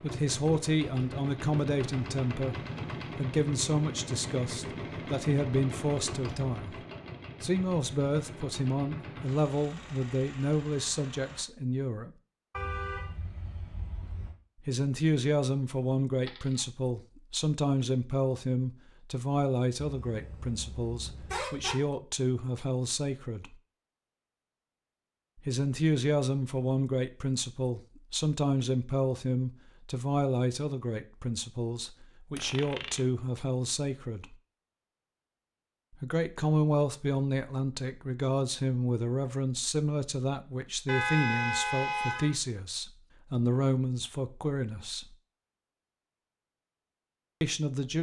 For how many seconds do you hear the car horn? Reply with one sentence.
The car horn can be heard for 5 seconds in total.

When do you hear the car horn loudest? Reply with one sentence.
The loudest moment of the car horn is at 41 seconds.